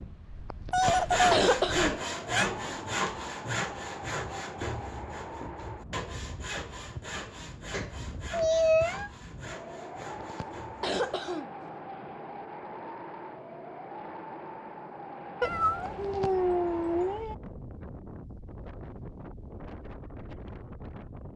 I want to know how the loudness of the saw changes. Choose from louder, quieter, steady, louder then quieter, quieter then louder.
quieter.